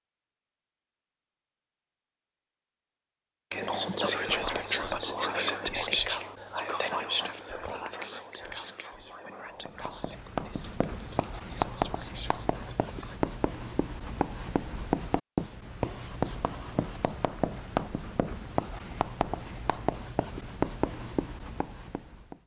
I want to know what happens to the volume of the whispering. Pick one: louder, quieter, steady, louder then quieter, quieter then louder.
quieter.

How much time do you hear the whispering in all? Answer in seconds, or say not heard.
10 s.